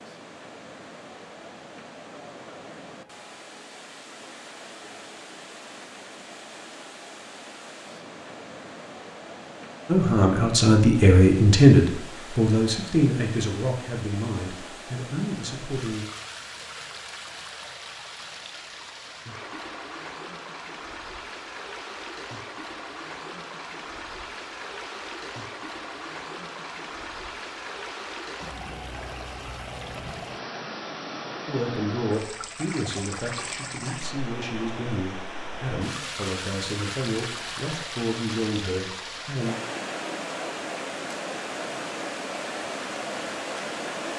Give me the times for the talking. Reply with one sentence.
The talking can be heard from 9.8 to 16.1 s and from 31.4 to 39.5 s.